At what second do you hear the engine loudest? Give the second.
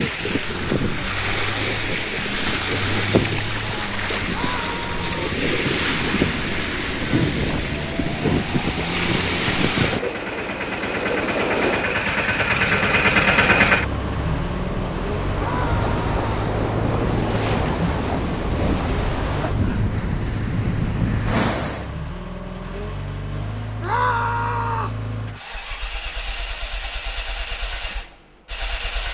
13 s.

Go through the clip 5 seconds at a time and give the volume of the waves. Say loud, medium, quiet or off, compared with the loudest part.
loud, loud, medium, loud, loud, off.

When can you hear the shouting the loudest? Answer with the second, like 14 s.
24 s.